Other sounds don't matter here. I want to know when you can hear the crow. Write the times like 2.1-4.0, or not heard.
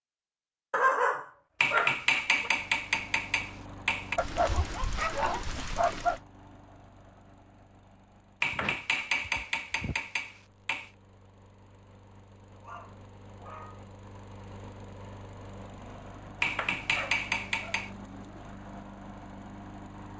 not heard.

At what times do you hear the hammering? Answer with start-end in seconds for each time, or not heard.
1.6-4.2, 8.4-10.9, 16.4-17.9.